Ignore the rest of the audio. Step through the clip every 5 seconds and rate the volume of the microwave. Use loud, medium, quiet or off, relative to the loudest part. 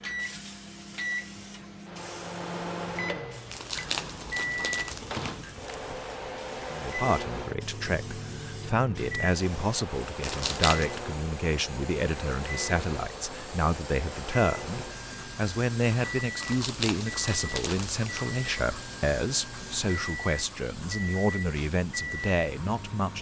loud, loud, loud, medium, loud.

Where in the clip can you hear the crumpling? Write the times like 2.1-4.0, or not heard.
3.5-5.8, 10.2-11.0, 16.4-18.3.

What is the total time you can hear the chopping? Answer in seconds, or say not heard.
not heard.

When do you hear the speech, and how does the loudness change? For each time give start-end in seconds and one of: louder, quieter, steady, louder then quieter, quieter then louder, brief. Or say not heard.
6.7-23.1 steady.